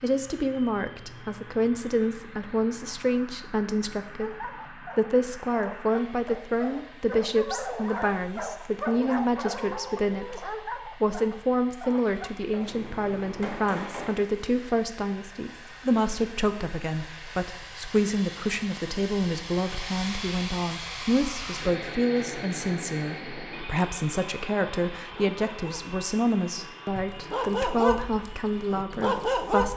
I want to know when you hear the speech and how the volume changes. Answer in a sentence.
The speech can be heard from 0.0 to 29.7 s, at a steady volume.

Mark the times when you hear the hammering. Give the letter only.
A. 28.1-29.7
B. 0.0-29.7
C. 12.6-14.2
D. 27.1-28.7
C.